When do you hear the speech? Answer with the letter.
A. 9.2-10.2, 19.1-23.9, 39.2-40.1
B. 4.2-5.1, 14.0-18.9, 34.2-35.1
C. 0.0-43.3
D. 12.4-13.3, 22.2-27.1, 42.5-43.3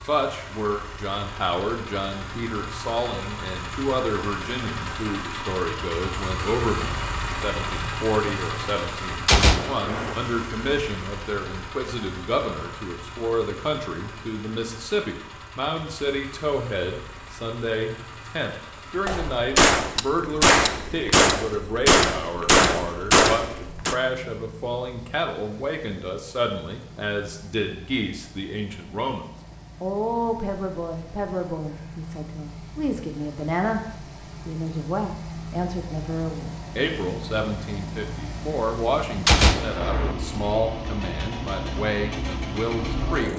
C.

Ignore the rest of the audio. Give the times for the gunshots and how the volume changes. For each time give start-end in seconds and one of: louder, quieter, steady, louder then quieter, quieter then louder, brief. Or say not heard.
9.2-10.2 brief
19.1-23.9 steady
39.2-40.1 brief.